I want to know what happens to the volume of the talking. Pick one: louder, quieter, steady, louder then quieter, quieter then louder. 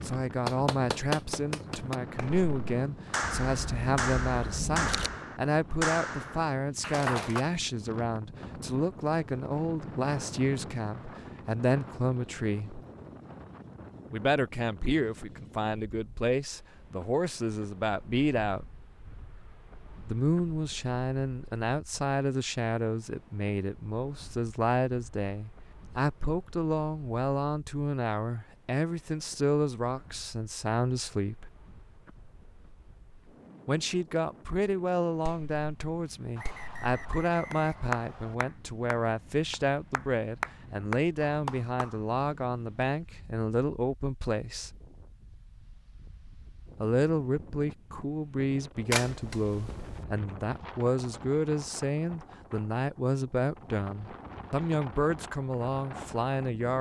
steady.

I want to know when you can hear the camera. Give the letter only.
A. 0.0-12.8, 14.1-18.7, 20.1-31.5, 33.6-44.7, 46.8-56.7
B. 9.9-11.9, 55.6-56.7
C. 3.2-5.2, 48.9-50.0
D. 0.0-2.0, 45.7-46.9
C.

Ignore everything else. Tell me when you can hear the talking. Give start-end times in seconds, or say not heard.
0.0-12.8, 14.1-18.7, 20.1-31.5, 33.6-44.7, 46.8-56.7.